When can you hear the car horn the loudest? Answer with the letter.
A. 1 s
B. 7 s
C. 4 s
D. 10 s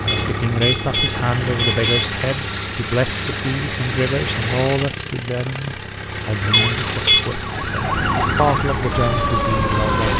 B.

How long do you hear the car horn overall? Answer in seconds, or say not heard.
3 s.